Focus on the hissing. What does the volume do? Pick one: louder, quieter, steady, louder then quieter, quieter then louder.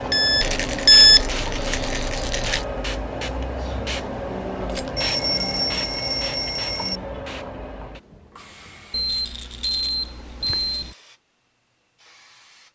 quieter.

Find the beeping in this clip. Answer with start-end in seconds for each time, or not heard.
0.1-1.2, 5.0-7.0, 8.9-10.9.